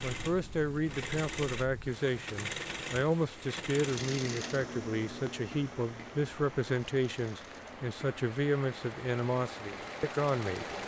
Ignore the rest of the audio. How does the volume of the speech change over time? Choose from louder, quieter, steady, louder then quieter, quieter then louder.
steady.